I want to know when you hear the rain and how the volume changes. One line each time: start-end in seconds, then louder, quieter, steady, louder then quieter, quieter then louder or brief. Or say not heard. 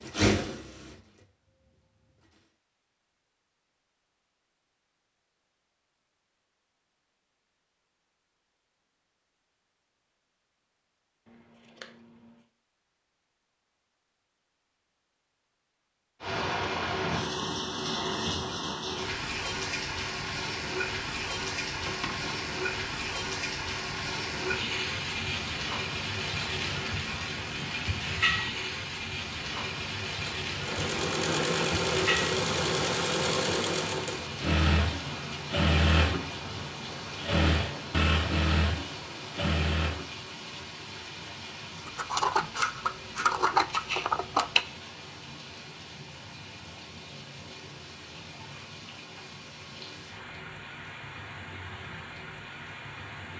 16.2-53.3 quieter.